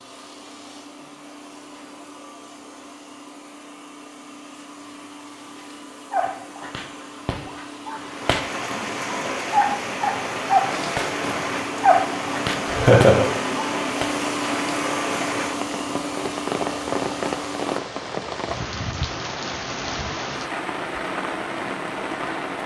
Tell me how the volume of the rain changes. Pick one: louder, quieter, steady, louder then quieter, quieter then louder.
steady.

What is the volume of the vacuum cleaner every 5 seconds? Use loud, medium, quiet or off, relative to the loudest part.
quiet, medium, loud, loud, off.